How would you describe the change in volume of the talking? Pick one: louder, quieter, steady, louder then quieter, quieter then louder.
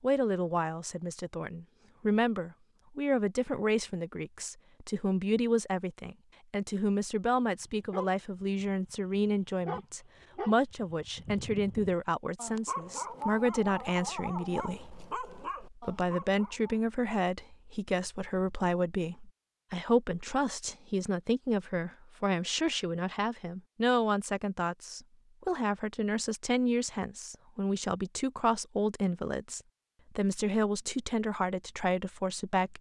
steady.